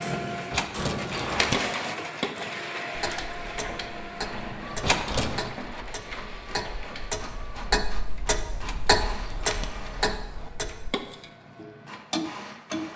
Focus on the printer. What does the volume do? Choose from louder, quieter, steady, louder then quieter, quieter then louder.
quieter.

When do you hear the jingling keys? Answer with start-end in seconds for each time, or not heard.
0.5-1.6, 4.8-5.5, 8.6-10.5.